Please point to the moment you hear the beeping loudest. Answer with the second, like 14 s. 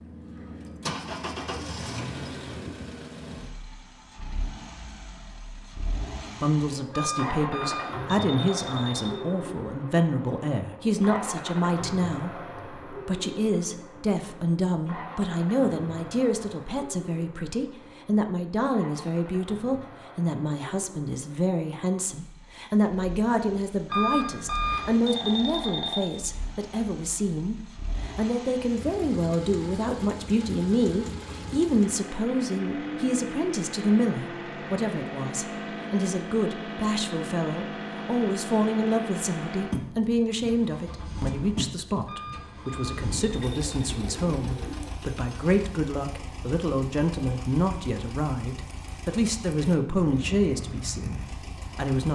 24 s.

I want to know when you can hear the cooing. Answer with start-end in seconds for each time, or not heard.
1.0-2.9, 43.0-45.0.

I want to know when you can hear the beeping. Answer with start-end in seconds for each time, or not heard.
6.9-9.2, 23.9-26.1, 42.0-43.6.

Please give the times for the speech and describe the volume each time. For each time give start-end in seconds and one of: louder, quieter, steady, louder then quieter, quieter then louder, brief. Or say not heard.
6.3-52.1 steady.